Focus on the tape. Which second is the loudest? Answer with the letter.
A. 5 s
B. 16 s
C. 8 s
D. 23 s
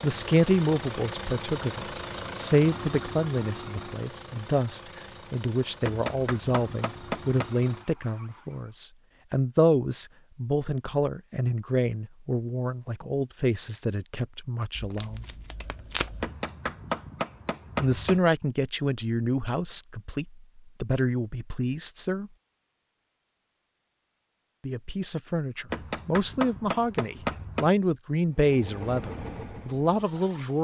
B.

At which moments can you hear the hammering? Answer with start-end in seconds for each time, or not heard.
5.8-7.5, 16.2-18.2, 25.7-27.7.